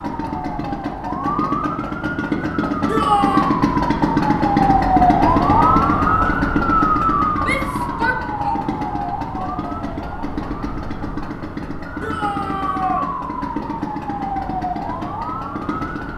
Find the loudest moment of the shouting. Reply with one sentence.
The volume of the shouting peaks at 3 seconds.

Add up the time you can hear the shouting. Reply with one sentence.
You can hear the shouting for 3 seconds altogether.